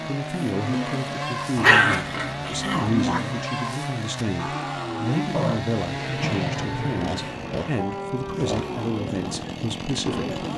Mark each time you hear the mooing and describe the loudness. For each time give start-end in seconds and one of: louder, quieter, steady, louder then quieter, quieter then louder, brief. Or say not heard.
0.0-10.5 steady.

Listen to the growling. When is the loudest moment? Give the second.
2 s.